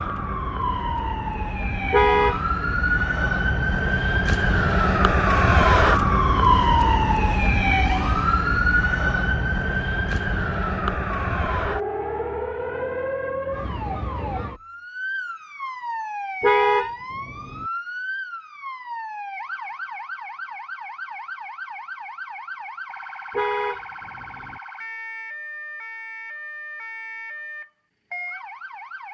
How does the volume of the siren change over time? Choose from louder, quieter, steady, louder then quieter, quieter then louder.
quieter.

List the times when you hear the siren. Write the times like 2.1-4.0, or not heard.
0.0-29.0.